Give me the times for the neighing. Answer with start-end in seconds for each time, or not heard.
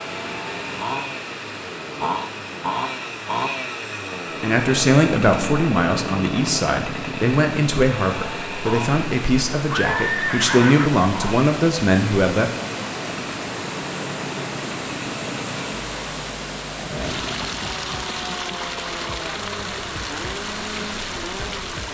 9.7-11.1.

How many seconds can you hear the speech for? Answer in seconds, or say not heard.
8 s.